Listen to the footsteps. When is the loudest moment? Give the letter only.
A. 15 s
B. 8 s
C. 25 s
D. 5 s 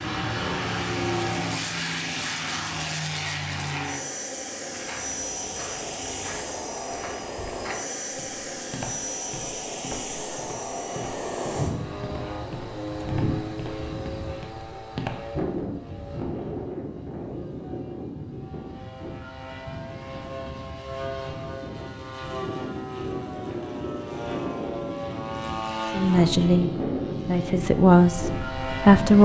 A.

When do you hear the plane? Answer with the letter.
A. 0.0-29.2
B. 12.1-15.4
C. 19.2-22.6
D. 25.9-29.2
A.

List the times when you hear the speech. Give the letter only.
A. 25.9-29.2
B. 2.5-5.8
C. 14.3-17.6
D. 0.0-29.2
A.